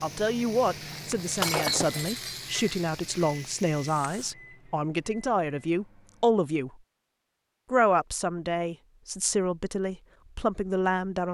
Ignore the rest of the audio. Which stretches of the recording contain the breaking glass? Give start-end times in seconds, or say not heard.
1.4-2.4.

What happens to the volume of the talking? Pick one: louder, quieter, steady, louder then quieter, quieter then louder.
steady.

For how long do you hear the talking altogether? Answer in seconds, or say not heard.
10 s.